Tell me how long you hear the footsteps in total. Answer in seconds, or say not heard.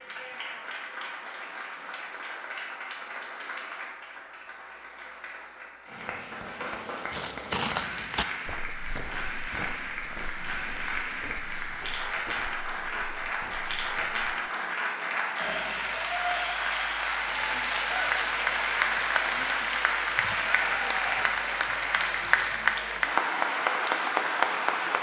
7 s.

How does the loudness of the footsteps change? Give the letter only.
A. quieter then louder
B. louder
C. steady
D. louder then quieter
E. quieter
E.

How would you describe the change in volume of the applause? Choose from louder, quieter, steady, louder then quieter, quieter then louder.
louder.